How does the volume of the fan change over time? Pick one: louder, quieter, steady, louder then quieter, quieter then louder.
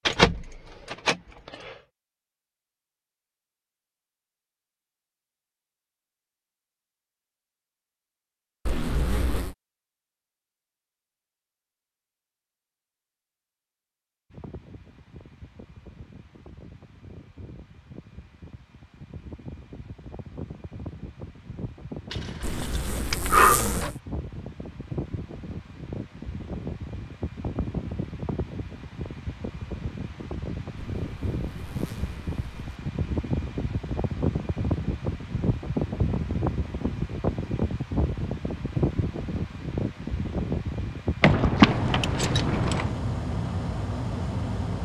louder.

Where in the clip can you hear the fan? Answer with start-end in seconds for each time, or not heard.
14.3-44.8.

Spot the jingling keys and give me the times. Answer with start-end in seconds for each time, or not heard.
0.1-1.7, 22.1-23.9, 41.2-42.9.